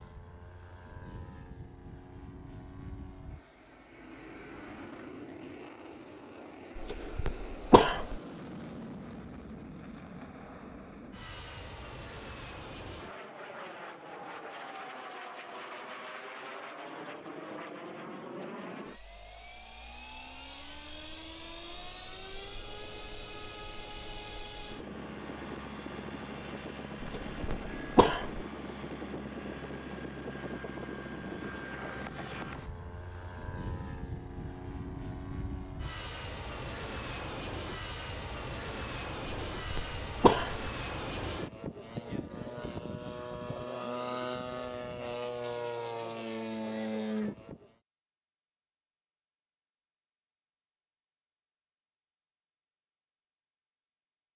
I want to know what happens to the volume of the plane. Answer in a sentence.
The loudness of the plane goes up.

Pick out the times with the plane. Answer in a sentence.
The plane can be heard from 0.0 to 47.7 s.